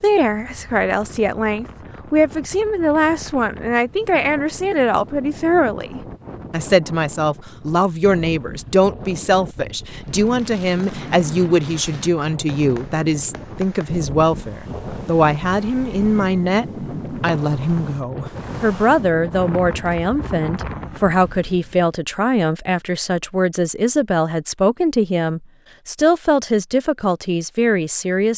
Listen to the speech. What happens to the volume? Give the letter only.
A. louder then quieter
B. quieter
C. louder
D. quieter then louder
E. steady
E.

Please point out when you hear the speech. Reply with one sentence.
The speech can be heard from 0.0 to 28.3 s.